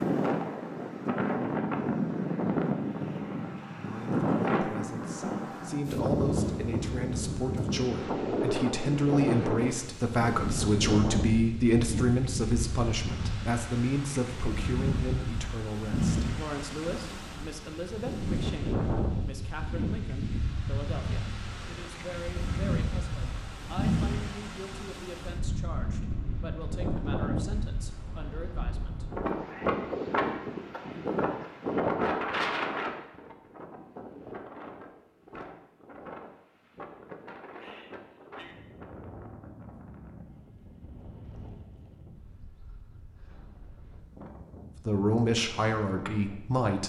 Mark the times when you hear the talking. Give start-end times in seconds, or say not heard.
3.8-29.1, 44.9-46.8.